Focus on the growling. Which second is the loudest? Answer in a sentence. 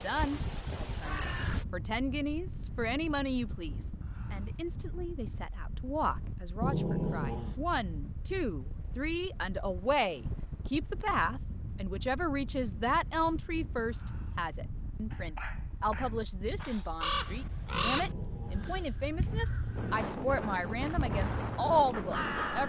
The loudest moment of the growling is at 7 seconds.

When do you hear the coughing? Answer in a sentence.
You can hear the coughing from 15.1 to 16.9 s.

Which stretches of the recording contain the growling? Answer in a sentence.
The growling can be heard from 6.6 to 7.5 s and from 17.7 to 19.8 s.